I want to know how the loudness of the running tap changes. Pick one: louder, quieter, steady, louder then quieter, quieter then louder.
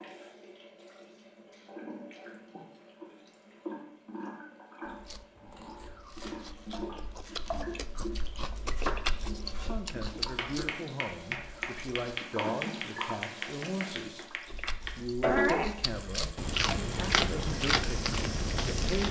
louder.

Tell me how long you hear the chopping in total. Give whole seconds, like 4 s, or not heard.
8 s.